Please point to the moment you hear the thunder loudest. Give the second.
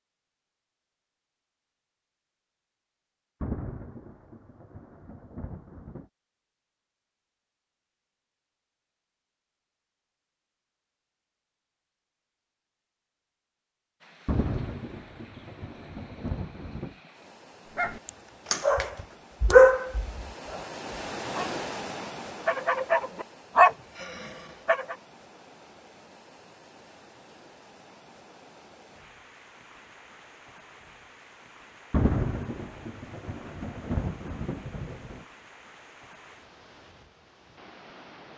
32 s.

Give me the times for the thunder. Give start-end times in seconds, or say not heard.
3.4-6.0, 14.2-16.9, 31.9-35.2.